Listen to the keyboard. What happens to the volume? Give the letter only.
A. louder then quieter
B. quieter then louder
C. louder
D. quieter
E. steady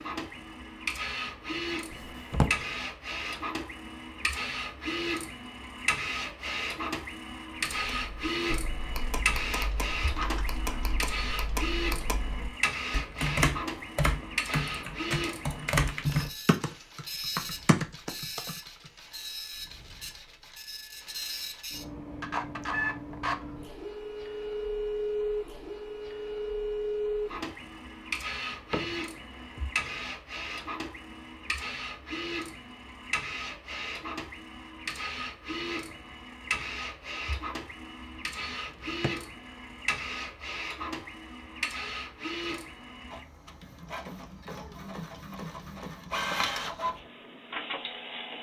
C.